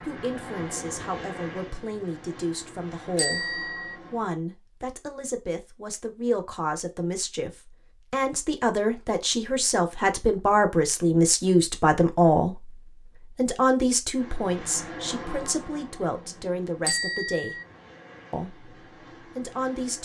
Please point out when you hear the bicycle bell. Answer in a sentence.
You can hear the bicycle bell from 3.1 to 4.0 s and from 16.9 to 17.6 s.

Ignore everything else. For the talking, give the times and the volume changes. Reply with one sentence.
The talking can be heard from 0.0 to 17.6 s, getting louder then quieter; and briefly from 18.3 to 20.0 s.